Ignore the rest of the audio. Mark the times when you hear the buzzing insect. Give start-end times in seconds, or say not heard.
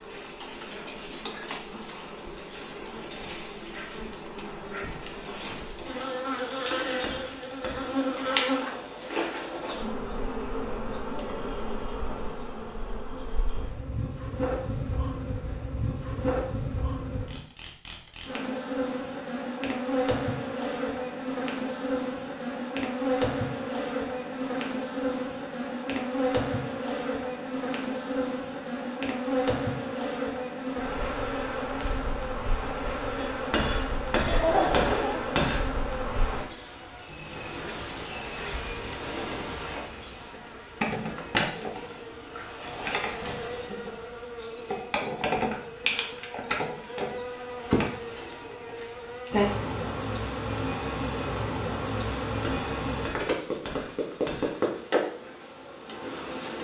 0.0-56.5.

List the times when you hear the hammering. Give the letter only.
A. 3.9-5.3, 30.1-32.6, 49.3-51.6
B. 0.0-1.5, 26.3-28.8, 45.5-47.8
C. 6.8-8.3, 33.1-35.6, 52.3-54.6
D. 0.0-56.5
C.